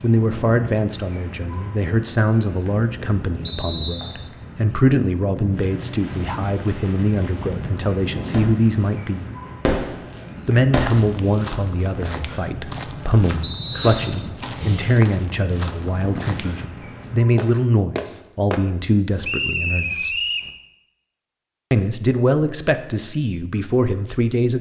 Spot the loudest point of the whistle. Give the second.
20 s.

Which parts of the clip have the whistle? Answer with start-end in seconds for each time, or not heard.
3.5-4.3, 13.4-14.3, 19.2-20.5.